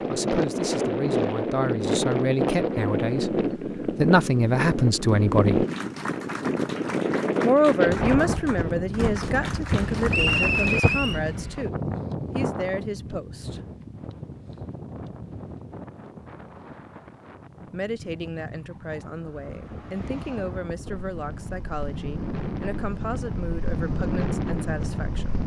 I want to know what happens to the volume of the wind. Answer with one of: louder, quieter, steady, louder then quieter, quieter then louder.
quieter then louder.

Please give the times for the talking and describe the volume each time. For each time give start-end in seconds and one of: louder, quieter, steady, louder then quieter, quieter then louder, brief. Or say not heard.
0.0-5.7 louder
7.4-13.6 quieter
17.7-25.4 steady.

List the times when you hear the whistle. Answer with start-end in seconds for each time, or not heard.
10.1-11.2.